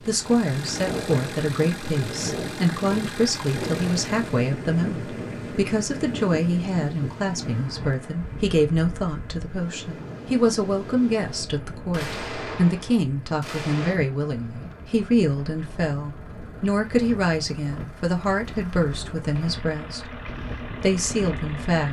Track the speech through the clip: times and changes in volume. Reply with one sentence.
You can hear the speech from 0.0 to 20.1 s, at a steady volume; and briefly from 20.8 to 21.8 s.